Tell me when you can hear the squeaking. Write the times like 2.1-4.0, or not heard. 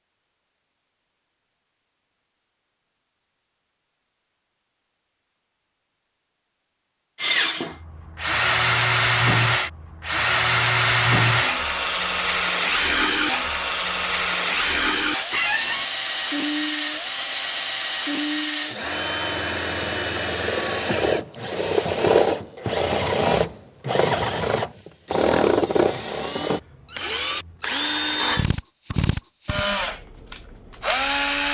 15.3-15.8.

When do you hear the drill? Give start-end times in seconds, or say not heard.
7.2-31.4.